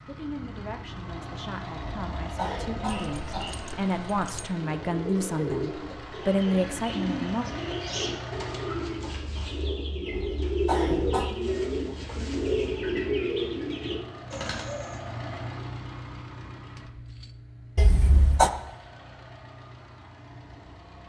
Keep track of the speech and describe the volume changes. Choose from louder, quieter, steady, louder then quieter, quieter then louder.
louder.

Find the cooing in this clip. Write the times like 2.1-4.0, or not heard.
4.5-15.0.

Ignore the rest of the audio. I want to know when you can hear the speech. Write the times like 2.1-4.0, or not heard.
0.1-7.5.